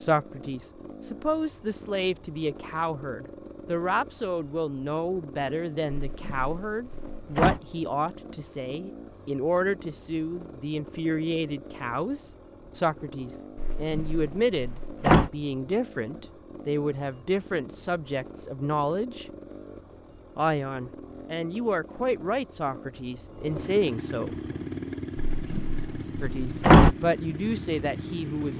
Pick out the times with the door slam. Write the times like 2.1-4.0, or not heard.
5.8-7.6, 13.6-15.3, 25.1-26.9.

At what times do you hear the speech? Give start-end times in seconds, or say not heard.
0.0-19.2, 20.4-24.4, 26.2-28.5.